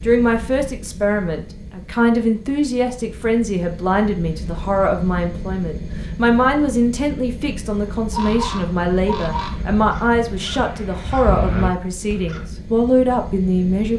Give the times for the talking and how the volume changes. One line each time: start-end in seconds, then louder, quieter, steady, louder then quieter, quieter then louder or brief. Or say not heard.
0.0-13.9 steady.